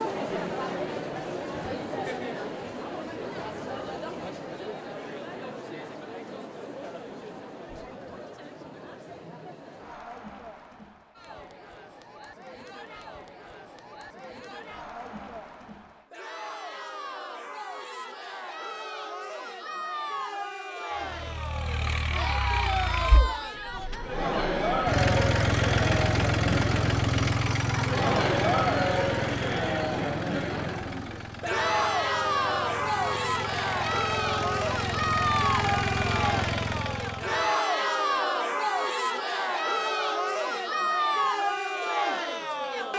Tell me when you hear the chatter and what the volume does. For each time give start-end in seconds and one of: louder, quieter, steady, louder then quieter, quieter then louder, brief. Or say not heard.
0.0-42.9 quieter then louder.